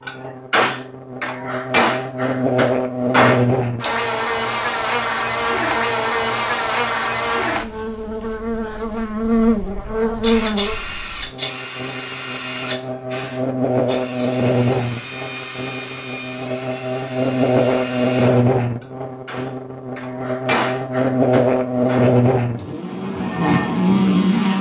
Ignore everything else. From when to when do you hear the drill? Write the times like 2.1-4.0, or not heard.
10.0-18.2.